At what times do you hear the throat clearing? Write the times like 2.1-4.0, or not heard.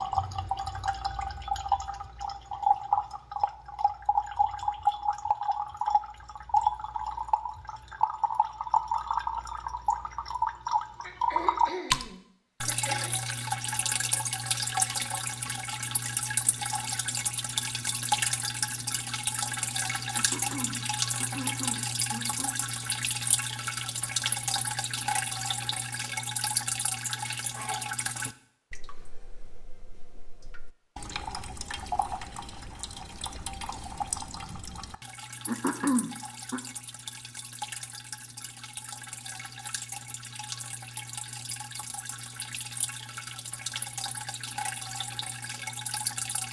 11.0-13.2, 20.1-22.5, 35.5-36.6.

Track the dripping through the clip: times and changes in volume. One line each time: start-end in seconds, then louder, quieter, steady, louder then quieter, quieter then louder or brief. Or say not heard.
0.0-46.4 quieter.